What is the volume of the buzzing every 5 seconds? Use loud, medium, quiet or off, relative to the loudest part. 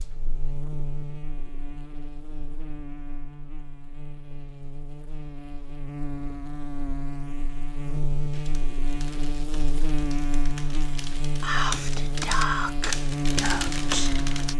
medium, loud, loud.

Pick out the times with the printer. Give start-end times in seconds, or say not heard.
not heard.